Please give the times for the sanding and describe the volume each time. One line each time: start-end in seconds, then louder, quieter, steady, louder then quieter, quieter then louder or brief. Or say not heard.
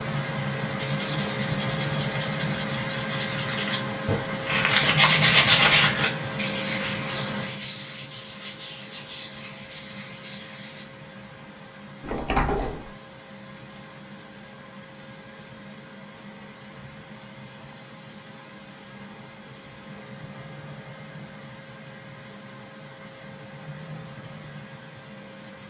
0.8-10.8 louder then quieter.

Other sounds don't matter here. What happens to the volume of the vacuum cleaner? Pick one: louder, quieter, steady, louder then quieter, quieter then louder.
quieter.